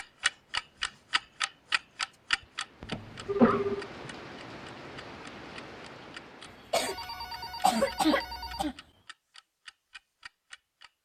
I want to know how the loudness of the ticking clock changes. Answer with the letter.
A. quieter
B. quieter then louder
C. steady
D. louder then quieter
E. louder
A.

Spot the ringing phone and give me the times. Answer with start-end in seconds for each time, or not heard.
3.2-3.9, 6.8-8.7.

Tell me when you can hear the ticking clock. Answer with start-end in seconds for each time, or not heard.
0.0-10.9.